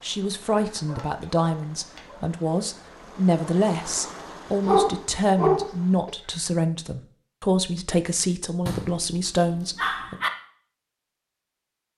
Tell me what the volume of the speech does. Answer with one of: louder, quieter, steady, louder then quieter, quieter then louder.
steady.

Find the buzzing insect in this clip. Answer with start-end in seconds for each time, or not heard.
not heard.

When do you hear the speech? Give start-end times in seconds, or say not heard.
0.0-10.2.